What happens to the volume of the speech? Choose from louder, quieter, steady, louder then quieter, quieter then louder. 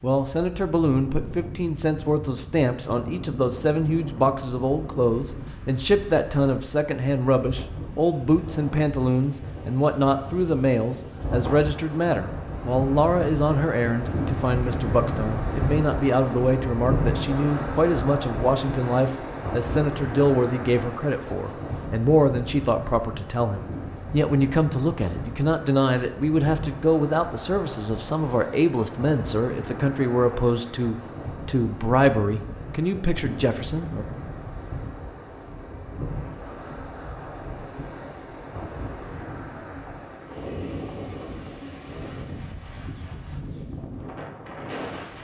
steady.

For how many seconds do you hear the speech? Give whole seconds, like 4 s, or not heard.
34 s.